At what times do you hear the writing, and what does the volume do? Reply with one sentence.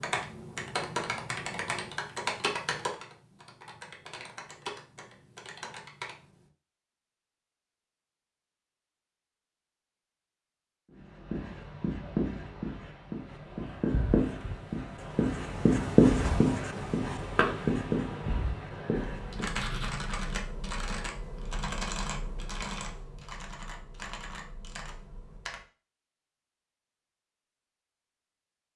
The writing can be heard from 10.9 to 20.1 s, getting louder then quieter.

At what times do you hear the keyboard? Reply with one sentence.
The keyboard can be heard from 0.0 to 6.5 s and from 18.9 to 25.6 s.